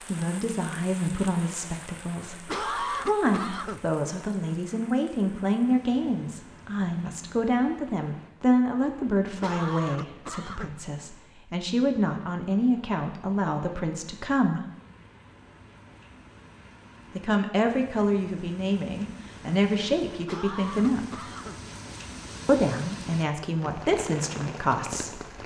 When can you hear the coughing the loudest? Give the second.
3 s.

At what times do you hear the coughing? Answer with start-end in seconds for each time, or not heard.
2.5-3.9, 9.4-10.8, 20.2-21.6.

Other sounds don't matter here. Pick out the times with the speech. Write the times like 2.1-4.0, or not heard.
0.1-14.7, 17.1-21.1, 22.4-25.3.